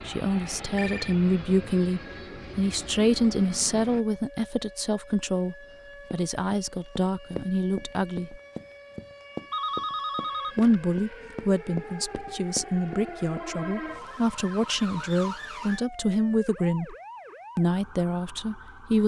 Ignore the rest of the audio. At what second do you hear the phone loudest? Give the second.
10 s.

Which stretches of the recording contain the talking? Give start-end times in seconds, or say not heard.
0.1-8.4, 10.6-16.9, 17.6-19.0.